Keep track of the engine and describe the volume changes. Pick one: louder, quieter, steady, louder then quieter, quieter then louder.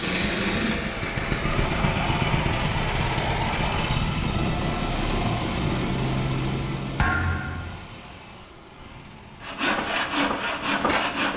quieter.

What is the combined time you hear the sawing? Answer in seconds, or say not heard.
2 s.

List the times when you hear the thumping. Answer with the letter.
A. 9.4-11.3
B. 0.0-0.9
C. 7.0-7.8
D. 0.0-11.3
C.